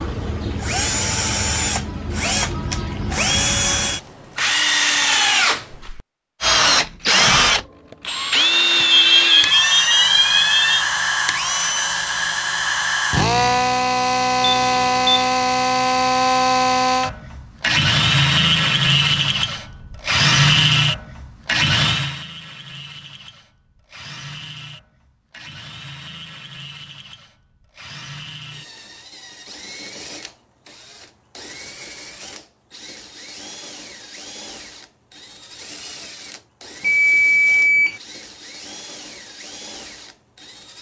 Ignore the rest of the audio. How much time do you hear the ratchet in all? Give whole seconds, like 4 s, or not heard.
not heard.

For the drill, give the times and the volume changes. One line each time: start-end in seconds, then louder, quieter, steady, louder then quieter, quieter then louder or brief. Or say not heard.
0.0-40.7 quieter.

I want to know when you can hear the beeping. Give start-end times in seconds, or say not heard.
8.9-10.8, 14.4-15.3, 36.8-38.0.